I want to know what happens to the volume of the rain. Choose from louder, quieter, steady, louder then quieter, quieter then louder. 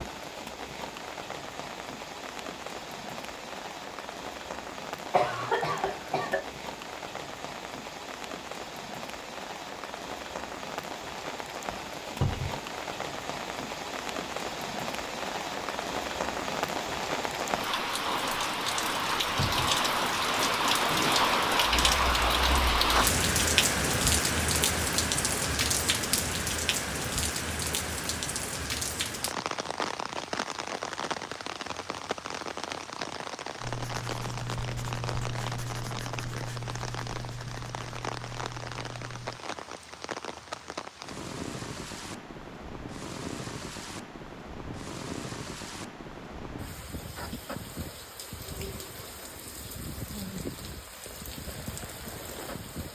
louder then quieter.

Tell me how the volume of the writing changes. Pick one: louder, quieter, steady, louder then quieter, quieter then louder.
quieter.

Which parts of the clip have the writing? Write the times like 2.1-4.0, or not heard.
33.5-39.4.